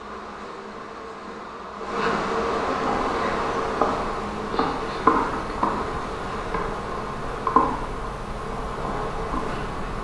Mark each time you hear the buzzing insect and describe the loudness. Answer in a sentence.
The buzzing insect can be heard from 0.0 to 9.9 s, getting louder then quieter.